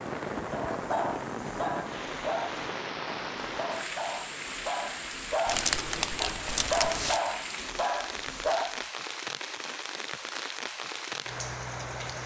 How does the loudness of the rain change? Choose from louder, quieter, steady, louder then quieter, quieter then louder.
steady.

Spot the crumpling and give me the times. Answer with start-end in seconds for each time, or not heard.
5.5-7.2.